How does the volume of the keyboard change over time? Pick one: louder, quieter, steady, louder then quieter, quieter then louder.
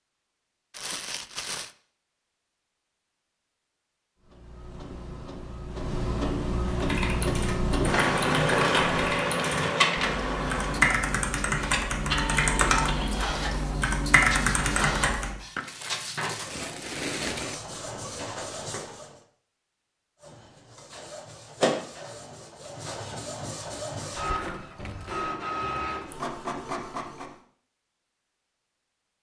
louder.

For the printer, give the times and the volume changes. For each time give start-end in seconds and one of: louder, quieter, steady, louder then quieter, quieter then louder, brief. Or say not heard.
4.2-19.2 louder then quieter
20.2-27.4 quieter then louder.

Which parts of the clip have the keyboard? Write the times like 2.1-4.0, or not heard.
6.7-15.3.